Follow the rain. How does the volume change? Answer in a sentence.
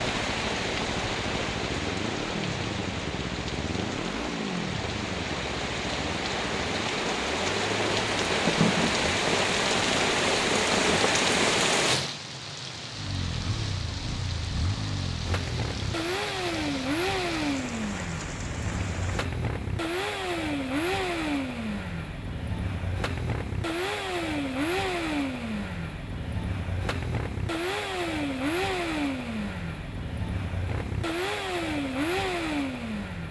The volume of the rain goes up, then down.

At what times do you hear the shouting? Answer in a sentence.
You can't hear the shouting here.